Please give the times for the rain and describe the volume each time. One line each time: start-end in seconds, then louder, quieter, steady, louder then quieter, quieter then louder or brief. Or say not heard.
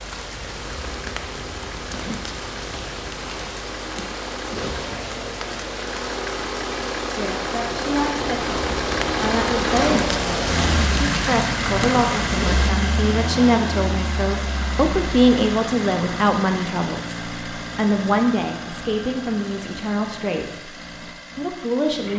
0.0-12.8 louder.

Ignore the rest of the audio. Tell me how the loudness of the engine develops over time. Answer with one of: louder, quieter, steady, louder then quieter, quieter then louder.
louder then quieter.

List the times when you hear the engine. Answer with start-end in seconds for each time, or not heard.
0.0-22.1.